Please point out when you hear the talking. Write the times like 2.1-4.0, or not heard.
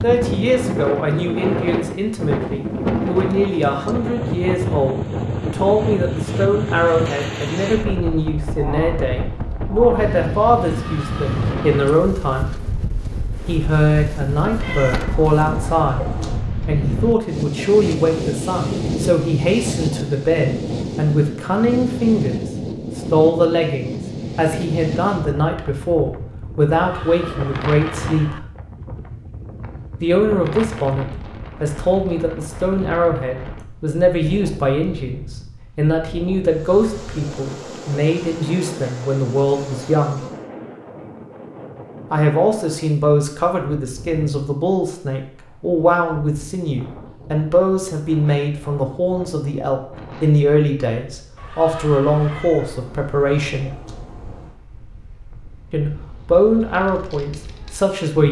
0.0-12.6, 13.4-16.1, 16.6-28.4, 30.0-40.2, 42.1-53.8, 55.7-58.2.